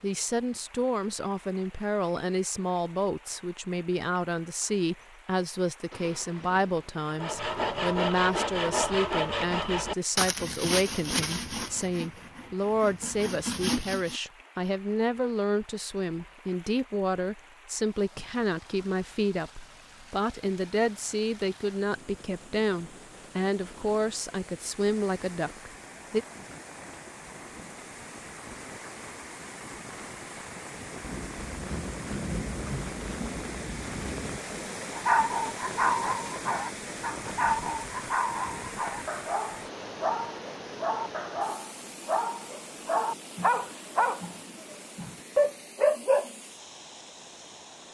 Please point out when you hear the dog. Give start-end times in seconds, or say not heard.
35.0-46.3.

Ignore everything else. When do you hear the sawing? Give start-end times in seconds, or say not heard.
7.0-14.2.